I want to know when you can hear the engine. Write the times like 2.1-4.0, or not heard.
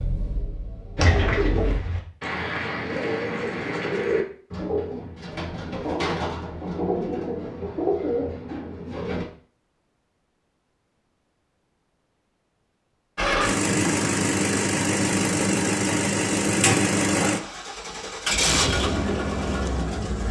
0.0-1.8, 13.2-20.2.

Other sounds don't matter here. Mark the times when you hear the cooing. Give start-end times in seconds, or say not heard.
0.9-9.2.